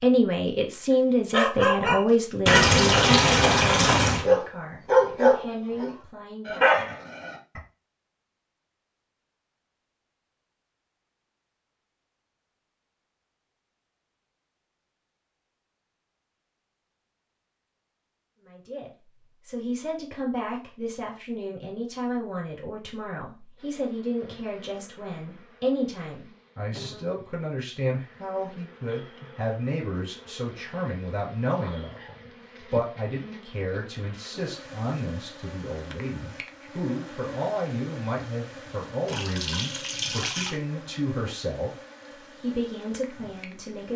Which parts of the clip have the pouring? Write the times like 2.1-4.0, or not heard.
2.5-4.2, 39.0-40.6.